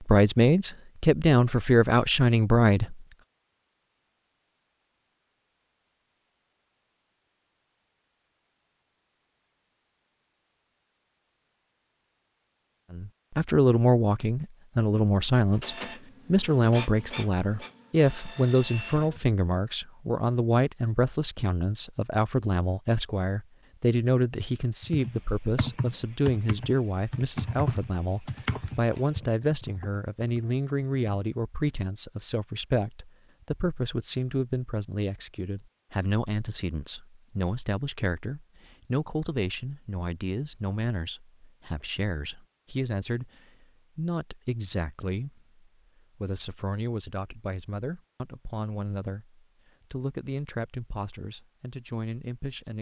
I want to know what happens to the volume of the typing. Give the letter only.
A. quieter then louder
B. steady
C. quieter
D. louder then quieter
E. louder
C.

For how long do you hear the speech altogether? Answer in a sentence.
You can hear the speech for 43 seconds altogether.